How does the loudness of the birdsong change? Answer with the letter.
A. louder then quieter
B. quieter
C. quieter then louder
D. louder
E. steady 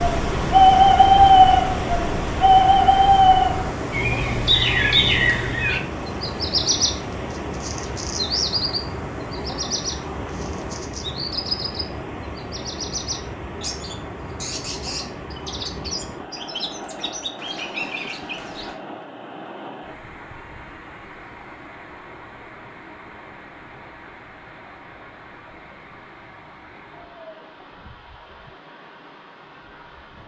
B.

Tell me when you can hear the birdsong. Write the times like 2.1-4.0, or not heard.
0.0-18.8.